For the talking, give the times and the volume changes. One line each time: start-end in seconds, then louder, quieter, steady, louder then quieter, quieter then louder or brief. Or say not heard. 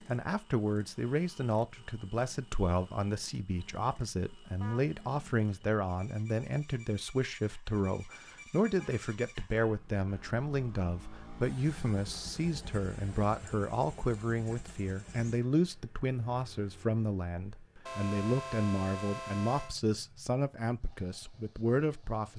0.1-22.3 steady.